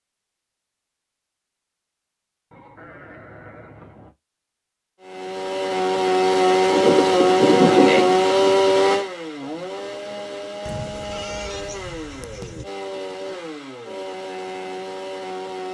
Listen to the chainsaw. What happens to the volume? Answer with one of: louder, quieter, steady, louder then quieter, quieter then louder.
quieter.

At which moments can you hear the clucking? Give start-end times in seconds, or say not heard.
not heard.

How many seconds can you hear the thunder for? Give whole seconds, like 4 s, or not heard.
2 s.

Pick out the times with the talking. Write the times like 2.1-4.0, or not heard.
not heard.